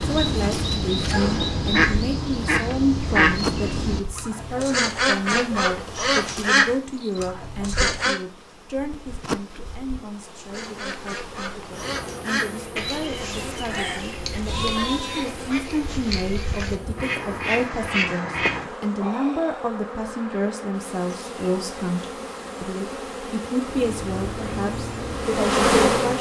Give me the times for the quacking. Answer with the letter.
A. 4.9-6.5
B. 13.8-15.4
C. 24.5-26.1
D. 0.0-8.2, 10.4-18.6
D.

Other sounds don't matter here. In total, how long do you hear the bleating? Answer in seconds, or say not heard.
2 s.